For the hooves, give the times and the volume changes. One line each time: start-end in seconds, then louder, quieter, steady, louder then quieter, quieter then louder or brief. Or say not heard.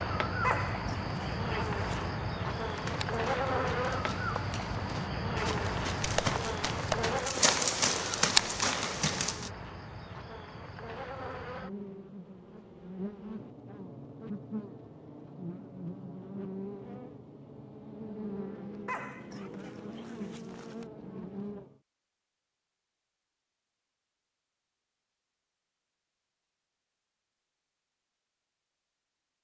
2.5-9.5 louder.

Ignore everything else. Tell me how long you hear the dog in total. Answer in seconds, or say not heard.
4 s.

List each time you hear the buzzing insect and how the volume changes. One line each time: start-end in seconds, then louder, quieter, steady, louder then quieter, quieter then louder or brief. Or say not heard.
0.0-21.8 quieter.